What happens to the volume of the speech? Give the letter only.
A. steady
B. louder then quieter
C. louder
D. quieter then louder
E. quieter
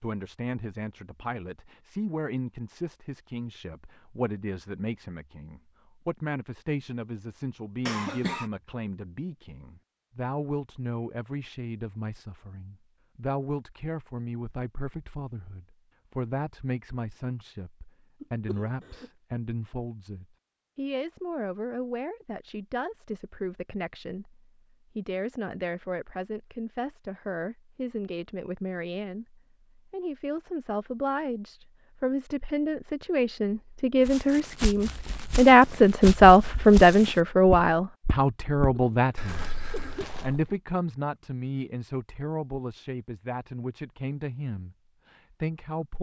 C.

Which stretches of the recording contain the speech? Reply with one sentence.
The speech can be heard from 0.0 to 45.9 s.